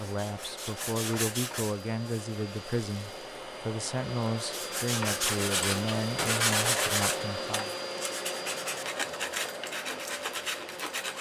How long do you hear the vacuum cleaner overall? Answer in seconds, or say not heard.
11 s.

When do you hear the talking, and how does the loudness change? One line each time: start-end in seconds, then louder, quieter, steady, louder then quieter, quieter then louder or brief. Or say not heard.
0.0-7.7 steady.